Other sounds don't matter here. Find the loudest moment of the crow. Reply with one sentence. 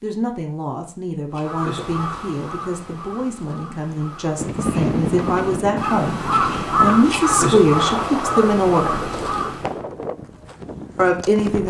The volume of the crow peaks at 7 seconds.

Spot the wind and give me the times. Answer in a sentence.
The wind can be heard from 4.3 to 11.6 s.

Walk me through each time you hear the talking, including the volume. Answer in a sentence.
You can hear the talking from 0.0 to 9.1 s, getting louder; and briefly from 10.9 to 11.6 s.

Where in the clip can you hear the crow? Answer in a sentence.
You can hear the crow from 1.4 to 9.8 s.